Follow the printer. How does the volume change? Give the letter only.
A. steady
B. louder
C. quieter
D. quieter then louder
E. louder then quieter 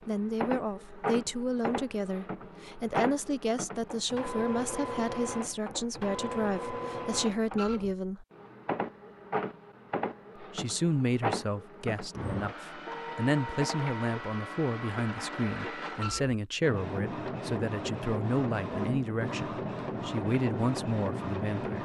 A.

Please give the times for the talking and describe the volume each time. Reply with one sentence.
You can hear the talking from 0.1 to 8.2 s, at a steady volume; and from 10.4 to 21.8 s, at a steady volume.